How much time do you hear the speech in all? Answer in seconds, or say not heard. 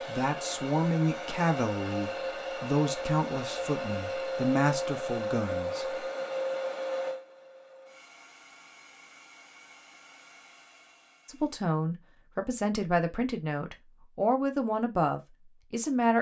11 s.